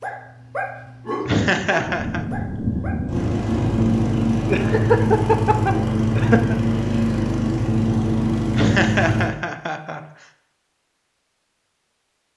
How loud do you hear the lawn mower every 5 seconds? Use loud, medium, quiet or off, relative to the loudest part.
loud, loud, off.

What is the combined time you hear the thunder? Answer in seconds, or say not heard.
2 s.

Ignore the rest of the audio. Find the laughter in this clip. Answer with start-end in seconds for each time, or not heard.
1.2-2.2, 4.5-6.5, 8.5-10.0.